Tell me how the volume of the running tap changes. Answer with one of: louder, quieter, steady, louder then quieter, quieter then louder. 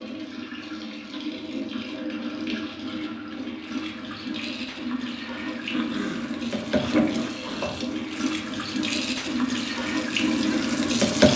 louder.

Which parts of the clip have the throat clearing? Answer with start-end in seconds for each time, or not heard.
5.7-7.8.